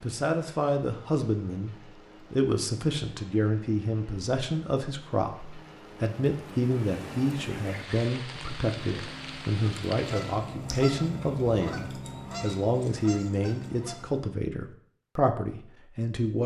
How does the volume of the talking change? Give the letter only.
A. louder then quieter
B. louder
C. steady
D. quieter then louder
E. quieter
C.